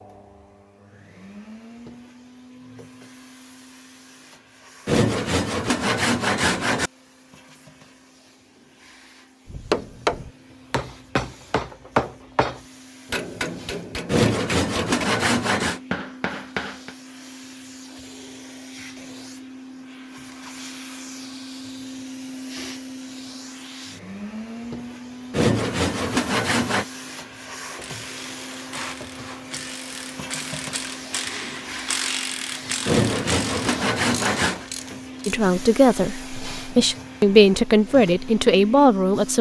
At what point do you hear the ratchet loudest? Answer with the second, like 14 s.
32 s.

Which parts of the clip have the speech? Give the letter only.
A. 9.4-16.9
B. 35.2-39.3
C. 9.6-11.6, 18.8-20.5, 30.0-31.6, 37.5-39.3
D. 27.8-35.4
B.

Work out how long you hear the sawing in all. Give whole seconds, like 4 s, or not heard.
7 s.